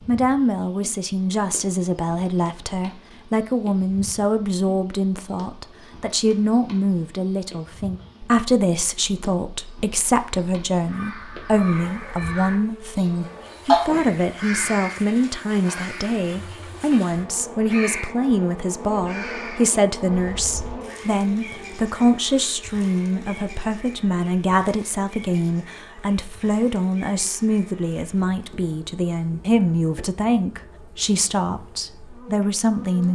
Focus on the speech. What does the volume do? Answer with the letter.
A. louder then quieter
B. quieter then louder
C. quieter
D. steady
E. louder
D.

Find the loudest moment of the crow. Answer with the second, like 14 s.
14 s.